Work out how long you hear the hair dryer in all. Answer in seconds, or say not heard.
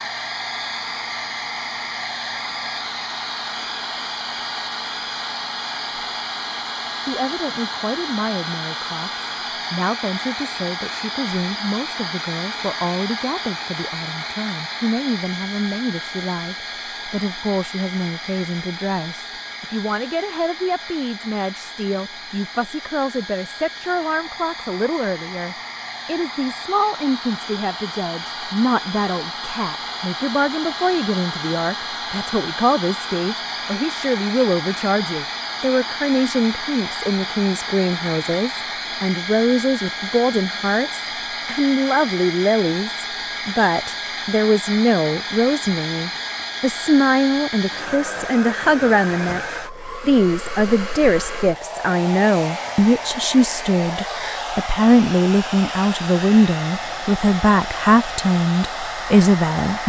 60 s.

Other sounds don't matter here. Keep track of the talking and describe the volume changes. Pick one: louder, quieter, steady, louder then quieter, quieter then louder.
louder.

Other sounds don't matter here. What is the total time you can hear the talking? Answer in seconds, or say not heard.
52 s.